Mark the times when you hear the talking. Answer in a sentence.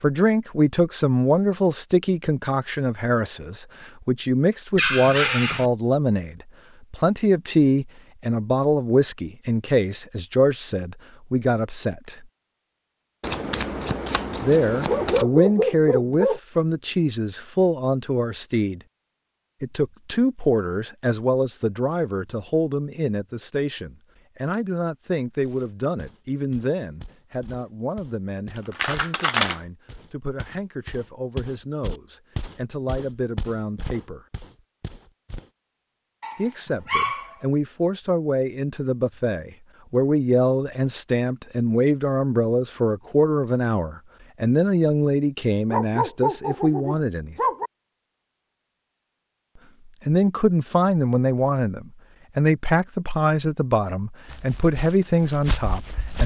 You can hear the talking from 0.0 to 12.2 s, from 14.4 to 18.8 s, from 19.6 to 34.2 s, from 36.4 to 47.4 s and from 50.0 to 56.2 s.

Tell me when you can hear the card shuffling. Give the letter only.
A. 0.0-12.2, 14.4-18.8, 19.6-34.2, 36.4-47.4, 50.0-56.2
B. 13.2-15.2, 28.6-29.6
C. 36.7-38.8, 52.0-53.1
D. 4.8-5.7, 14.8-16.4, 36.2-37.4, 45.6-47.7
B.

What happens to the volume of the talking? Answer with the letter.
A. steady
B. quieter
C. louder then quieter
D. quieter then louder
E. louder
D.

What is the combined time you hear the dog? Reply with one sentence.
You can hear the dog for 6 seconds altogether.